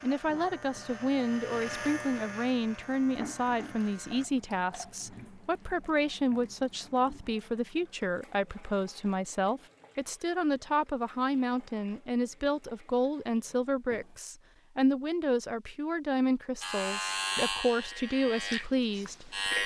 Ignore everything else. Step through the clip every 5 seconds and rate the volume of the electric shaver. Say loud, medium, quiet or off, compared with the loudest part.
medium, off, off, loud.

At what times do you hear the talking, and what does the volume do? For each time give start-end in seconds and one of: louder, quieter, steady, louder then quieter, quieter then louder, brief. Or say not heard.
0.0-19.6 steady.